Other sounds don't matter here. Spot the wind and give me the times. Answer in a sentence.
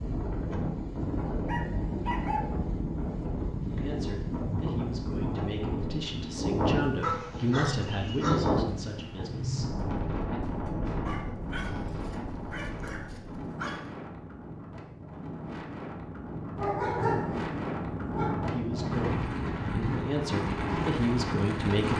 The wind can be heard from 0.0 to 21.9 s.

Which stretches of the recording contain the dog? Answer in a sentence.
The dog can be heard from 1.4 to 2.4 s, from 7.0 to 8.5 s, from 11.1 to 13.8 s and from 16.6 to 18.4 s.